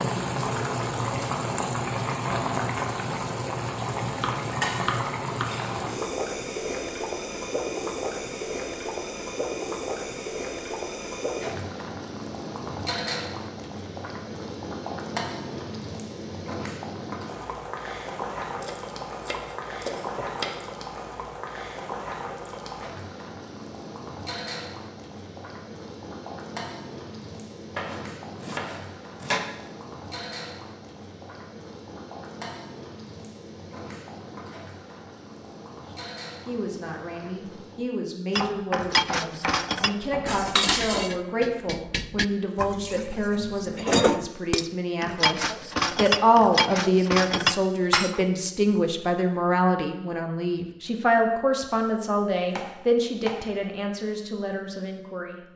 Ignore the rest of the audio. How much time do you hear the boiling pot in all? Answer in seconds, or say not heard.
38 s.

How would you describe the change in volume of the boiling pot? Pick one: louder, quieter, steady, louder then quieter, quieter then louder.
quieter.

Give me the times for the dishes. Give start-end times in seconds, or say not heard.
38.4-48.2.